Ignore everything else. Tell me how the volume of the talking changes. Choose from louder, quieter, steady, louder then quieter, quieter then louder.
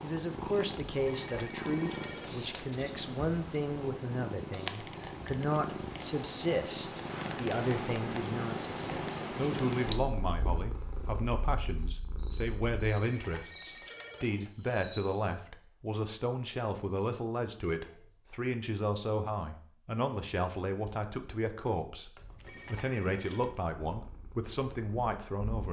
steady.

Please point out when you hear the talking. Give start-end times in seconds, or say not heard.
0.0-25.6.